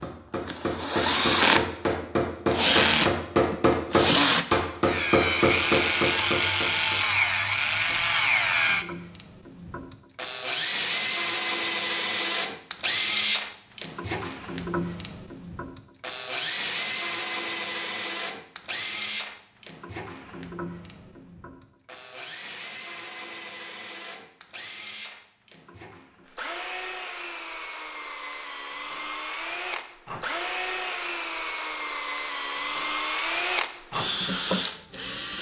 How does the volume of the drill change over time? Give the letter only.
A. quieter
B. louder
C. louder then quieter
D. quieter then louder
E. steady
D.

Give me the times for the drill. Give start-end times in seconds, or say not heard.
0.0-35.3.